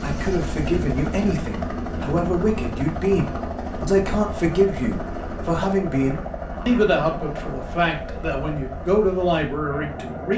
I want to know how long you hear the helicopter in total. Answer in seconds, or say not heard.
10 s.